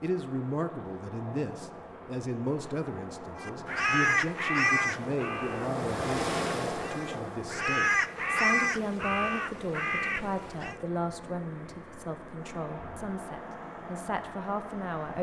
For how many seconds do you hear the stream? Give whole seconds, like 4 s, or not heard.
15 s.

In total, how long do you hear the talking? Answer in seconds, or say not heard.
15 s.